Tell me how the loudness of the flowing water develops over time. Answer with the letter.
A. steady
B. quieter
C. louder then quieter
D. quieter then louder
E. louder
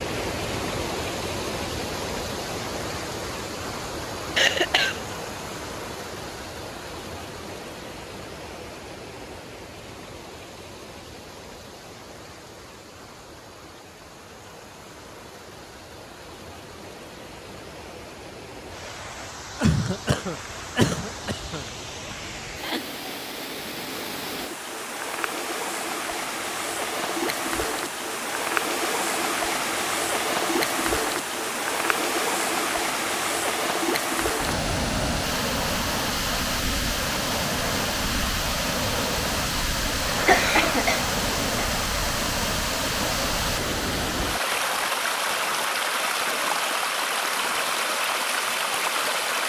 D.